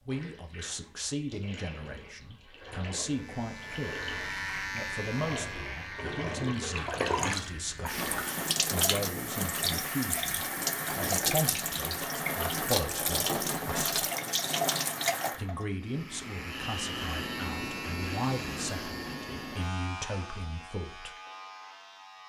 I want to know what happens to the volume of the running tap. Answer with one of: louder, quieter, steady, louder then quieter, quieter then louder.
louder.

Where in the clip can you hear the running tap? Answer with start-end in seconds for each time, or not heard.
0.0-15.7.